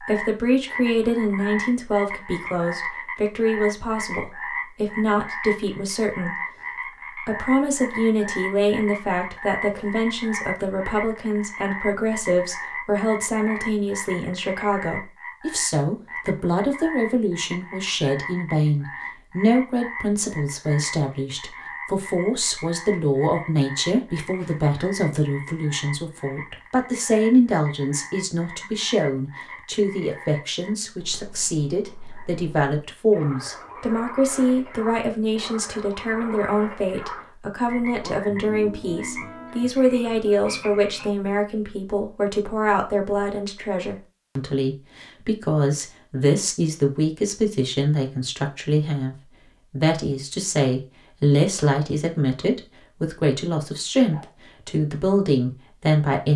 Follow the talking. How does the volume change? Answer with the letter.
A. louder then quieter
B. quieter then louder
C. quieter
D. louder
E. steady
E.